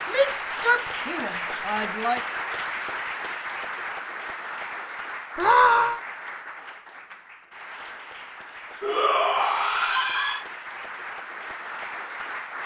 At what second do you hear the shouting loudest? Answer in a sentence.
The volume of the shouting peaks at 6 seconds.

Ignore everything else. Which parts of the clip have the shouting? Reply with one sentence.
You can hear the shouting from 0.1 to 2.2 s, from 5.3 to 6.0 s and from 8.8 to 10.4 s.